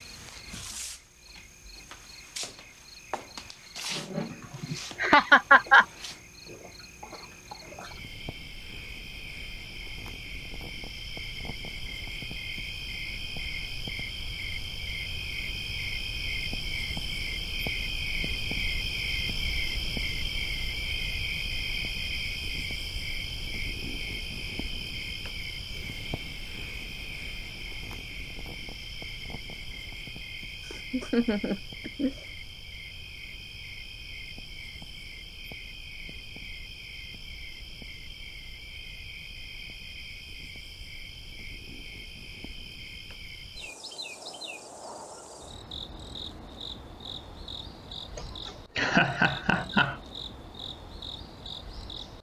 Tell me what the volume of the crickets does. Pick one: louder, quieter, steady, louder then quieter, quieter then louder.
louder then quieter.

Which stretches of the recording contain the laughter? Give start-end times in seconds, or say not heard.
4.3-5.8, 30.6-32.2, 48.1-50.0.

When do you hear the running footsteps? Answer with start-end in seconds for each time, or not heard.
not heard.